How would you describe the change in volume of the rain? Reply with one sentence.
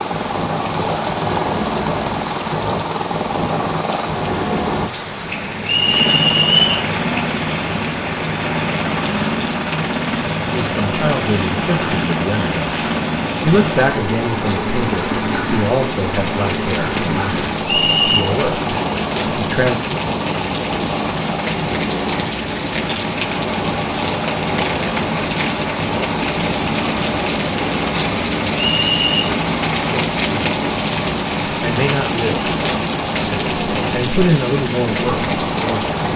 The volume of the rain goes up.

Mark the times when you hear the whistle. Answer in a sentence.
You can hear the whistle from 5.7 to 6.9 s, from 17.6 to 18.2 s and from 28.6 to 29.2 s.